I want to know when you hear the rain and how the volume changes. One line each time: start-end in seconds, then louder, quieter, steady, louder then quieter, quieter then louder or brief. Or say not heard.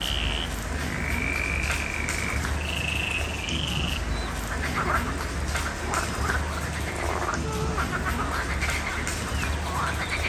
0.0-10.2 steady.